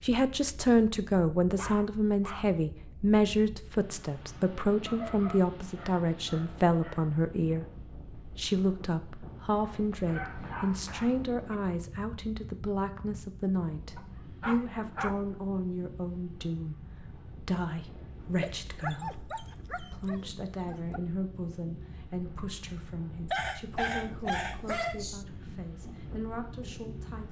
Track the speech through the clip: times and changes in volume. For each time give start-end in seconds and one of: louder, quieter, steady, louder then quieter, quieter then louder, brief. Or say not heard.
0.0-27.2 quieter.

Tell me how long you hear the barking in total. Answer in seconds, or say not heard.
11 s.